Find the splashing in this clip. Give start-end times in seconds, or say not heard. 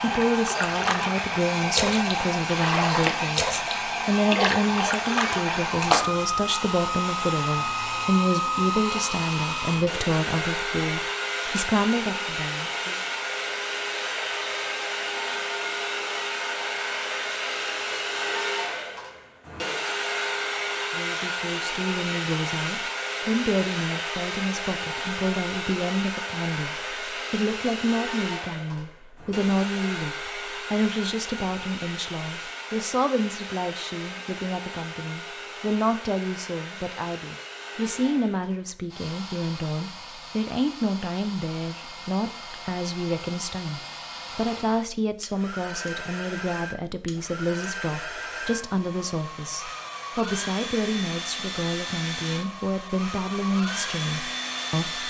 0.1-6.5.